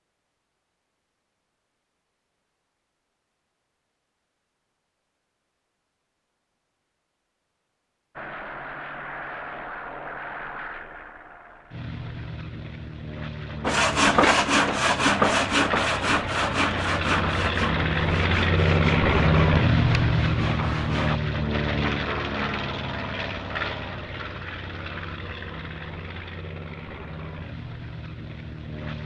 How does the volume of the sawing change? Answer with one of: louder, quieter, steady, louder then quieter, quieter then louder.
quieter.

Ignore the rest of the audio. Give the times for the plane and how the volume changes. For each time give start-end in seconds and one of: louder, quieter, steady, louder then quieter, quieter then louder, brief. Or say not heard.
8.2-29.0 louder then quieter.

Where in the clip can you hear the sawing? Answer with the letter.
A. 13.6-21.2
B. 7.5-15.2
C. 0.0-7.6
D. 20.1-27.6
A.